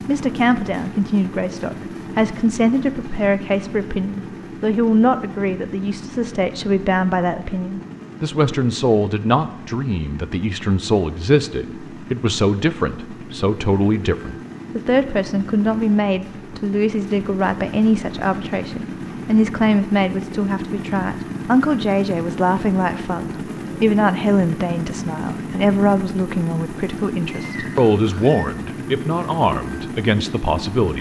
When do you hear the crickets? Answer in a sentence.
You can't hear the crickets here.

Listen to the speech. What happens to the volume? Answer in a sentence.
The loudness of the speech stays about the same.